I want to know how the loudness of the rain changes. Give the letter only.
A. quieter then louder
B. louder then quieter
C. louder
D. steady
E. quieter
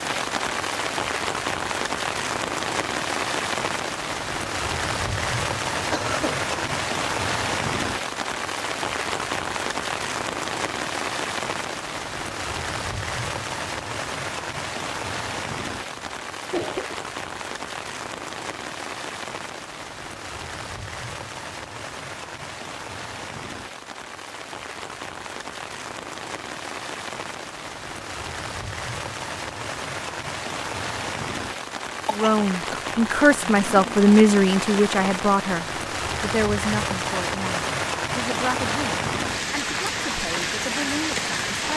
A.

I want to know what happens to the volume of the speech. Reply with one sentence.
The loudness of the speech goes down.